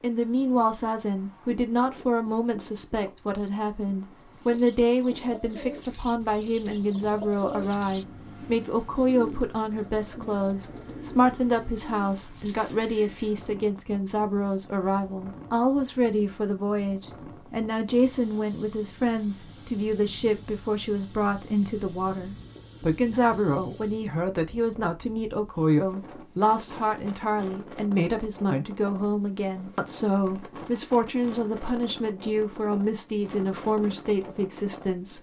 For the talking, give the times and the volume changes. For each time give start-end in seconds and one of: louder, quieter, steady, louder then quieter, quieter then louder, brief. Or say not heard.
0.0-35.1 steady.